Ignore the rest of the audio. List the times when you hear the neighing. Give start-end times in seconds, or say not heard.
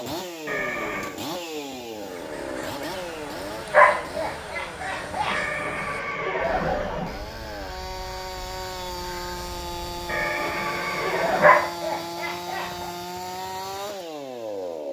0.5-1.1, 5.3-7.2, 10.1-11.6.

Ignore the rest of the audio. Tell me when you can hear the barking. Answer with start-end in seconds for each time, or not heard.
3.7-5.4, 11.4-12.9.